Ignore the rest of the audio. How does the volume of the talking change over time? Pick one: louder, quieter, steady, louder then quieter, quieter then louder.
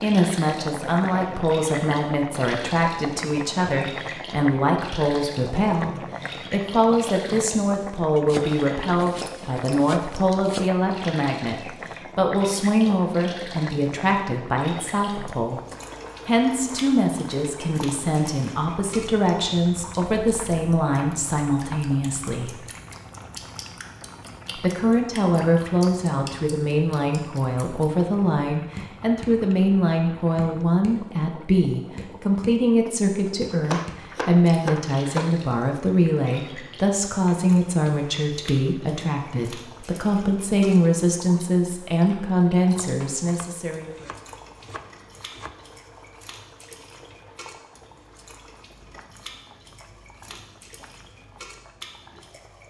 steady.